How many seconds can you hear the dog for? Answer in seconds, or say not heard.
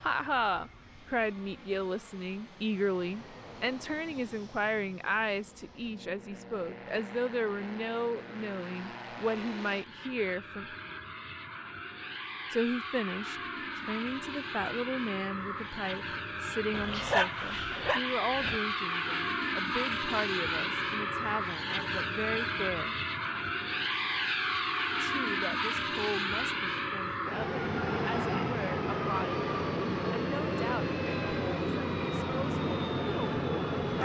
2 s.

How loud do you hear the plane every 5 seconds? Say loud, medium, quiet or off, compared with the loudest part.
quiet, quiet, medium, loud, loud, loud, loud.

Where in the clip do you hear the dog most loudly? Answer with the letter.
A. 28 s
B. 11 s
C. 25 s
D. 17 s
D.